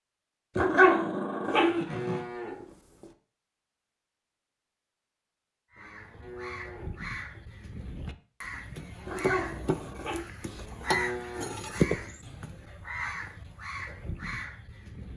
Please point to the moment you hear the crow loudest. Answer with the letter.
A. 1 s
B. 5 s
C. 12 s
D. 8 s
C.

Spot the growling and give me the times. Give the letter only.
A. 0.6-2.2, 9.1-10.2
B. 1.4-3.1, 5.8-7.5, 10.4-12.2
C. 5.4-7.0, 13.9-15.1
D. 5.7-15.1
A.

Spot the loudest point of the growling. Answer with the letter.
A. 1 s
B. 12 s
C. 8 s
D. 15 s
A.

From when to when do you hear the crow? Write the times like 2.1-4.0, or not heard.
5.7-15.1.